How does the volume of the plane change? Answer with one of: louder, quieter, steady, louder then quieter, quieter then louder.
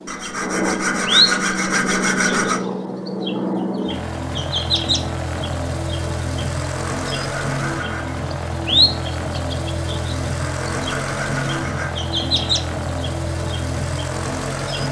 steady.